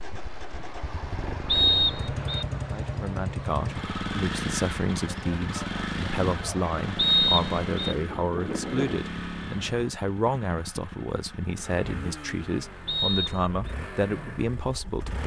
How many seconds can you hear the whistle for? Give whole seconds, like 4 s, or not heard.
3 s.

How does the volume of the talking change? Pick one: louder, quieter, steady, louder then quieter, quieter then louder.
steady.